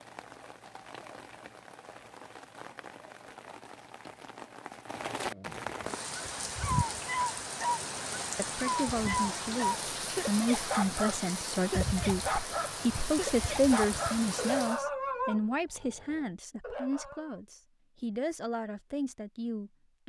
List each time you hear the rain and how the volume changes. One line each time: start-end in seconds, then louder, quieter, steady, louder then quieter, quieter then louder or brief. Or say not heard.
0.0-14.8 louder.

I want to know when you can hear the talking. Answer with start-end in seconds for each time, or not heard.
8.3-20.0.